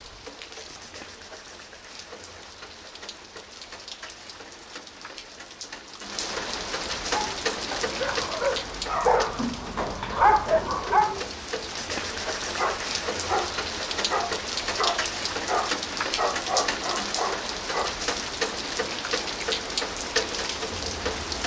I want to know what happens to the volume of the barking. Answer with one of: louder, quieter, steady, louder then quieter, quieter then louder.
louder then quieter.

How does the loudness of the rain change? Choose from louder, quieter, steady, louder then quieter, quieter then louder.
louder.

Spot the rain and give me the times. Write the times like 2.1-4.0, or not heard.
0.0-21.4.